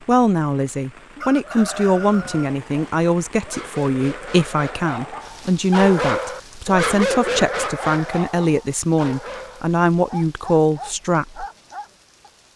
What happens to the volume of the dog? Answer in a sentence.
The volume of the dog goes up, then down.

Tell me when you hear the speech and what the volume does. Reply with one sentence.
You can hear the speech from 0.1 to 11.4 s, at a steady volume.